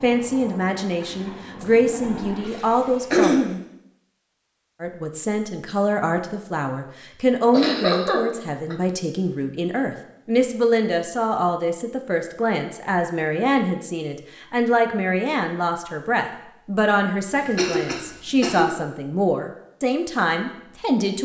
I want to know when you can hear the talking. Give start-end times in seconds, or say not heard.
0.0-3.4, 4.8-21.2.